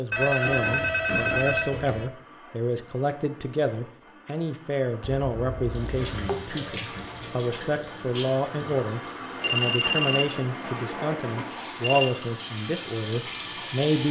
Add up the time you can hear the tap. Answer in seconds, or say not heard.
8 s.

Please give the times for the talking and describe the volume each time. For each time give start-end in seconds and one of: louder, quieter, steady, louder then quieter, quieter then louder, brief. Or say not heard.
0.0-14.0 steady.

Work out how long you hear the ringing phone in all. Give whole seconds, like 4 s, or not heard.
6 s.